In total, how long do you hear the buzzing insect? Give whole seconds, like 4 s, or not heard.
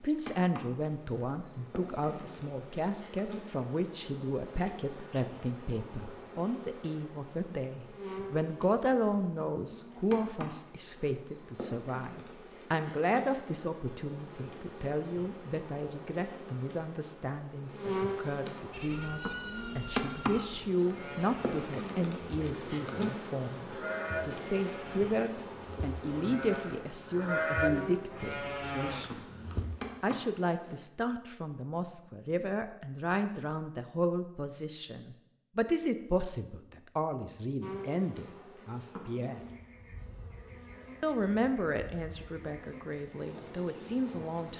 38 s.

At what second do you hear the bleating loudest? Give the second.
28 s.